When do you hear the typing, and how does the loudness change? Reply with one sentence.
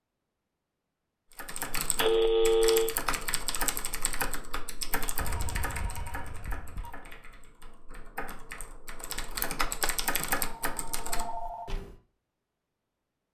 You can hear the typing from 1.4 to 11.9 s, getting quieter then louder.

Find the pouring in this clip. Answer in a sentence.
The pouring can't be heard in this clip.